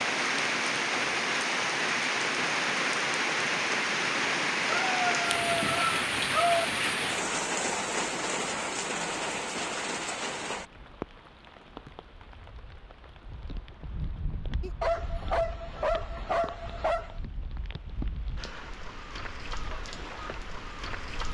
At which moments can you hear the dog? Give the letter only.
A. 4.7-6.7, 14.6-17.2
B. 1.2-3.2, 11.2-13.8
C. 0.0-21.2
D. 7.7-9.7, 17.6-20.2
A.